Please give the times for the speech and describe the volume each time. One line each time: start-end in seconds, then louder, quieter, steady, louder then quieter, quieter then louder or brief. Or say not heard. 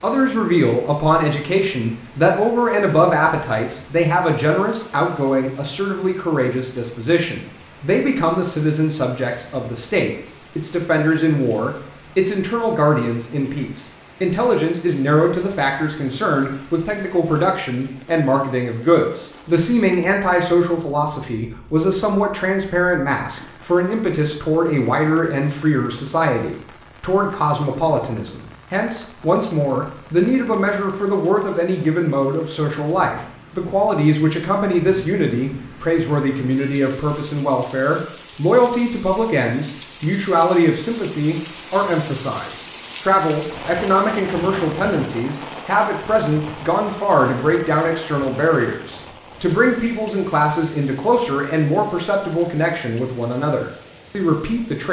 0.0-54.8 steady.